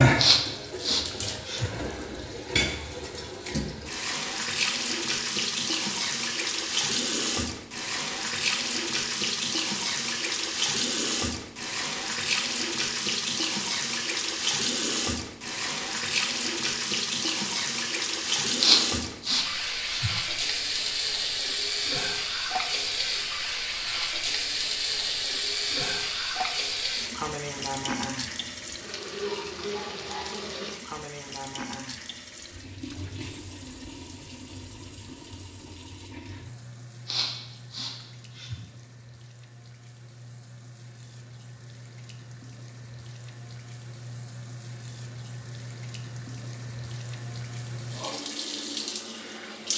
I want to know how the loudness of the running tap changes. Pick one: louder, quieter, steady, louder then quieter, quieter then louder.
quieter.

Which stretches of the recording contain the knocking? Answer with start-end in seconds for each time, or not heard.
not heard.